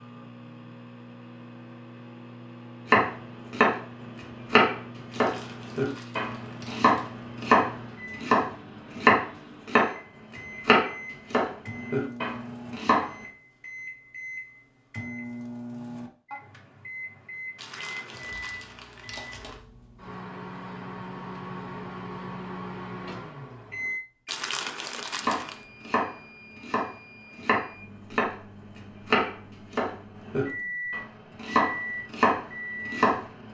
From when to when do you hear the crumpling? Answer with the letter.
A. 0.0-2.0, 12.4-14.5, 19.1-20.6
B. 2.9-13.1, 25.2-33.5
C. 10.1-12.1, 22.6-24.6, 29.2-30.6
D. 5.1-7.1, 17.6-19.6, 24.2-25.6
D.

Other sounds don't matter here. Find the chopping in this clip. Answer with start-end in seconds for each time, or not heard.
2.9-13.1, 25.2-33.5.